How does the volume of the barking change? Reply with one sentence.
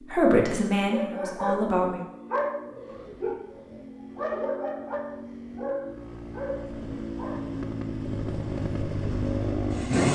The loudness of the barking goes down.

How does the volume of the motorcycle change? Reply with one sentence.
The volume of the motorcycle goes up.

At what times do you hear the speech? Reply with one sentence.
The speech can be heard from 0.1 to 2.0 s.